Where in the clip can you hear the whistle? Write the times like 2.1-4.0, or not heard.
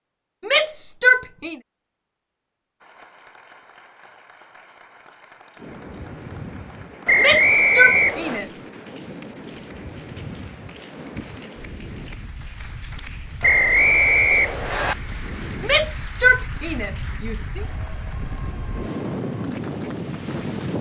7.0-8.4, 13.4-14.9.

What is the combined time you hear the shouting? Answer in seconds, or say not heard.
5 s.